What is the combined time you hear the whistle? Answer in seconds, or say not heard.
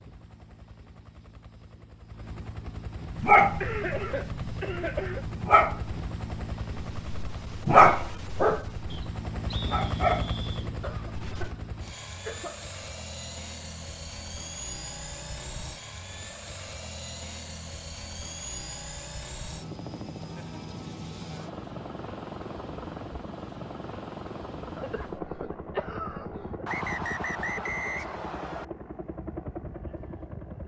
4 s.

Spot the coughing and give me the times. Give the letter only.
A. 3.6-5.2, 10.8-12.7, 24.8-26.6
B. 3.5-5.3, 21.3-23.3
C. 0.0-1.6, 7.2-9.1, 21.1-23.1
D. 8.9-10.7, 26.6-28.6
A.